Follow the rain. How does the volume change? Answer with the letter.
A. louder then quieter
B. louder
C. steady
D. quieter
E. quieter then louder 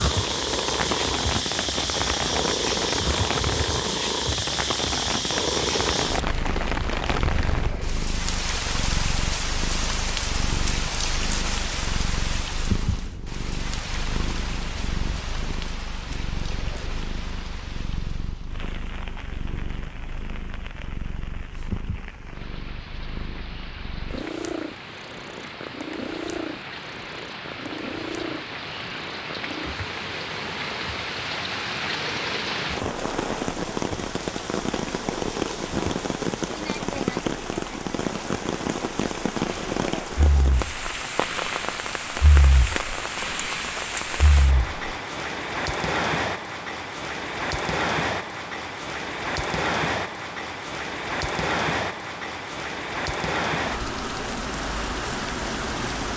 E.